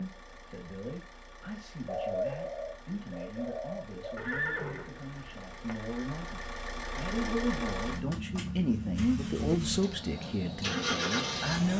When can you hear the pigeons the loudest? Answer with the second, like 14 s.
2 s.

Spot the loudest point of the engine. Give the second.
11 s.